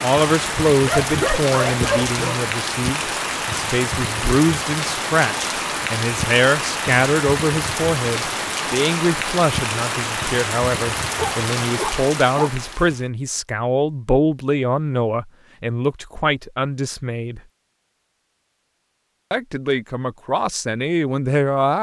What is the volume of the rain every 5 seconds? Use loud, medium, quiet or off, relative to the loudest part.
loud, loud, loud, off, off.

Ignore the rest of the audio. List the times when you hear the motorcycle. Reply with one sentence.
The motorcycle can't be heard in this clip.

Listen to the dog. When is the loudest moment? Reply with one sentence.
The loudest moment of the dog is at 1 second.